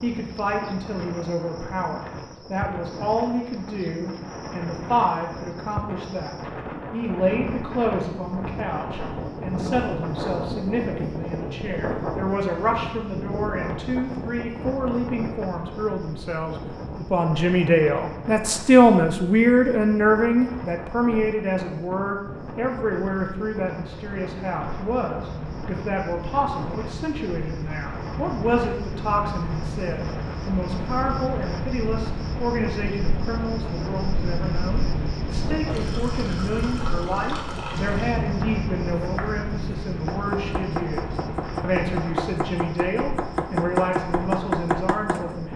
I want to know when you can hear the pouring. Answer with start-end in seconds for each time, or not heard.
35.6-38.2.